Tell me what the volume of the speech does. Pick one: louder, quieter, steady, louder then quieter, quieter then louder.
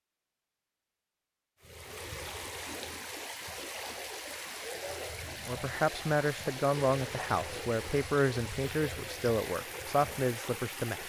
steady.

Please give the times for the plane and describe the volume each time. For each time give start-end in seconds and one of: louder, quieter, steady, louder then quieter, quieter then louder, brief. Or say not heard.
not heard.